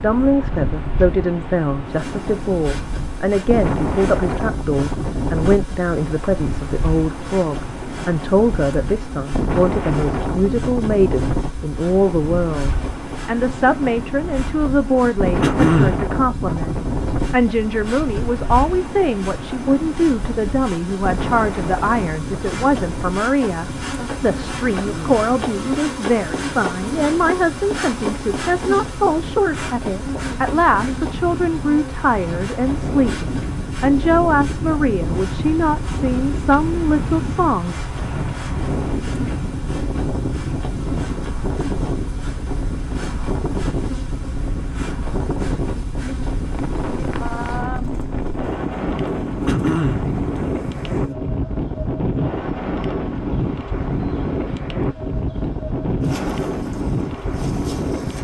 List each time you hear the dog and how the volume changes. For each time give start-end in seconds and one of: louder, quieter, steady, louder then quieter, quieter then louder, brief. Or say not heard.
not heard.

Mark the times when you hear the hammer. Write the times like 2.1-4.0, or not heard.
not heard.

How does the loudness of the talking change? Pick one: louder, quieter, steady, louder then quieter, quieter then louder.
steady.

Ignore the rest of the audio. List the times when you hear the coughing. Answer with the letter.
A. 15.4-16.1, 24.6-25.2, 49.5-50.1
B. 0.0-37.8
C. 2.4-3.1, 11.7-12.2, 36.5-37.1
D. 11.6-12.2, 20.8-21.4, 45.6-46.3
A.